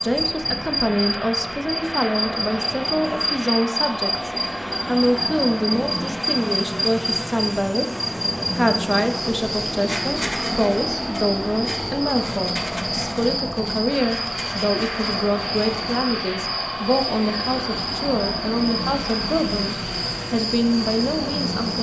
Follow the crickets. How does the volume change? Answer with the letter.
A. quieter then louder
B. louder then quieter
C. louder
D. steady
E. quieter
D.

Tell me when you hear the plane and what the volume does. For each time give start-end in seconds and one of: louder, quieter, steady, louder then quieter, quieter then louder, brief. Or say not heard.
0.0-21.7 steady.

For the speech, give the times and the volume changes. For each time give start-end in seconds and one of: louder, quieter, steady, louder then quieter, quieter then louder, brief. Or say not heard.
0.0-21.7 steady.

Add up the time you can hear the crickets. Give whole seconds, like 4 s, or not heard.
22 s.